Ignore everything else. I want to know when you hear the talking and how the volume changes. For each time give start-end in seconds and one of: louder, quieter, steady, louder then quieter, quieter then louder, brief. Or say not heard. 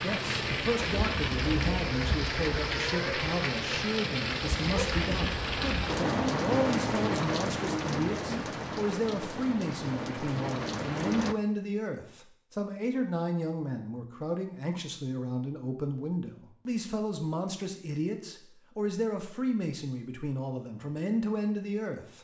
0.0-22.2 steady.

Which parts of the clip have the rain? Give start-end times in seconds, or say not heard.
0.0-11.3.